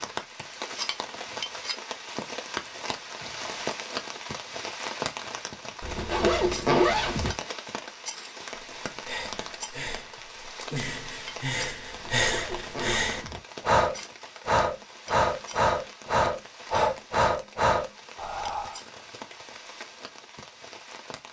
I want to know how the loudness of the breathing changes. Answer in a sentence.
The volume of the breathing goes up.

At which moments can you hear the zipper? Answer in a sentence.
The zipper can be heard from 5.8 to 7.3 s and from 11.9 to 13.4 s.